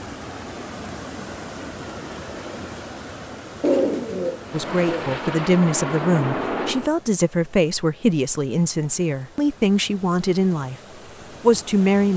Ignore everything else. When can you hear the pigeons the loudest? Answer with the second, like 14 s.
4 s.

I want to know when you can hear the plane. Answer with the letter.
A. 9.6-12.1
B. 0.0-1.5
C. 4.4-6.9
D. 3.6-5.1
C.